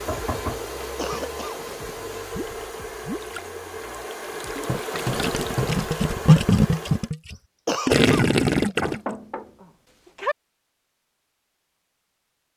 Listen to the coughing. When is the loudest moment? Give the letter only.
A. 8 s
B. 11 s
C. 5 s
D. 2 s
A.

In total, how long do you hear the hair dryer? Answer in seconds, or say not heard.
7 s.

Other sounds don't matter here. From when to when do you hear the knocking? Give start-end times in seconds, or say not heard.
0.1-1.8, 4.7-5.8, 8.8-10.3.